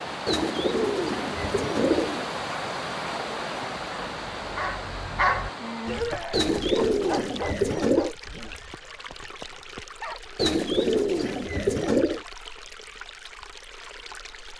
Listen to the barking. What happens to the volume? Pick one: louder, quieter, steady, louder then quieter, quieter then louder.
quieter.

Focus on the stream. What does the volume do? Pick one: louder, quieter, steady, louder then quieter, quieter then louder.
quieter.